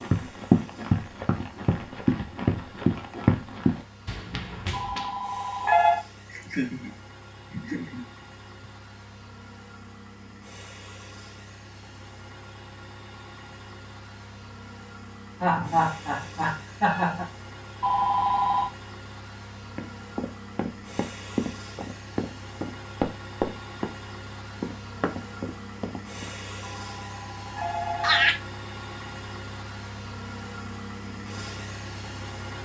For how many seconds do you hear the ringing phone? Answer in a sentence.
The ringing phone can be heard for 4 seconds in total.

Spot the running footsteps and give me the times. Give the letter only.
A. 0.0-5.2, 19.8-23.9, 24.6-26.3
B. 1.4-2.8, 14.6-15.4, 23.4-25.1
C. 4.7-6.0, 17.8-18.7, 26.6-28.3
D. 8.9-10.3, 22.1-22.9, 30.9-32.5
A.